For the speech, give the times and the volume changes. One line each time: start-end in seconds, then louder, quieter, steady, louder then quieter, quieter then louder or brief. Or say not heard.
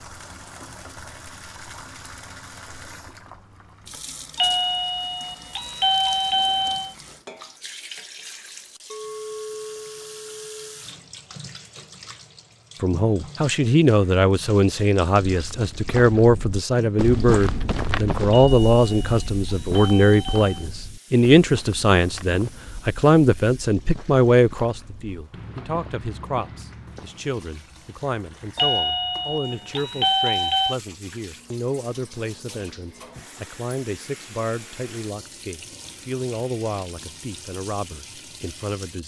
12.8-39.0 quieter.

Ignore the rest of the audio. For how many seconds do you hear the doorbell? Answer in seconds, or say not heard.
7 s.